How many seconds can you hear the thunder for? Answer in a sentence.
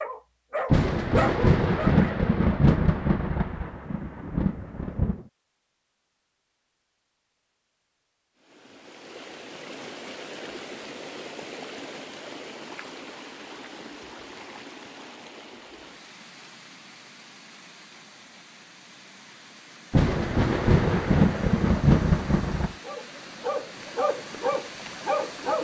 The thunder can be heard for 7 seconds in total.